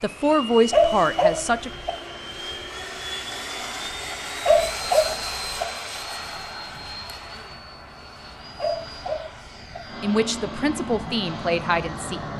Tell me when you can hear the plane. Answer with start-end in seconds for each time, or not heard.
0.0-12.3.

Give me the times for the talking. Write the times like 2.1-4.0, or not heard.
0.0-1.7, 10.0-12.3.